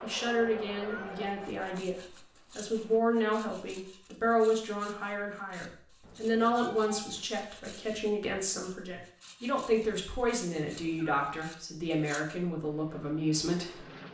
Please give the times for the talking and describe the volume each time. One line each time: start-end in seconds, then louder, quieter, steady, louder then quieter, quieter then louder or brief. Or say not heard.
0.0-13.8 steady.